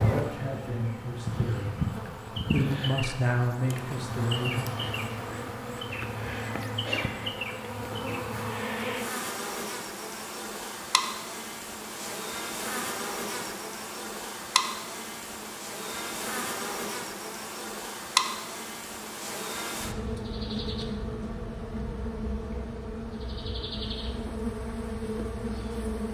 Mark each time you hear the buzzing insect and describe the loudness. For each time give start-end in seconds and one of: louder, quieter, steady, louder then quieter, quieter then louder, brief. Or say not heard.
0.0-26.0 steady.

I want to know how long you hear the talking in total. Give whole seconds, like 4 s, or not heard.
5 s.